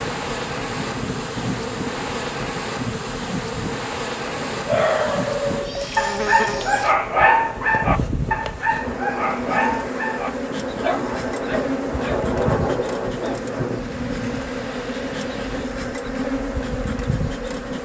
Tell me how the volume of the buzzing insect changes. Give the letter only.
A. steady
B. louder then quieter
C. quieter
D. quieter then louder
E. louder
A.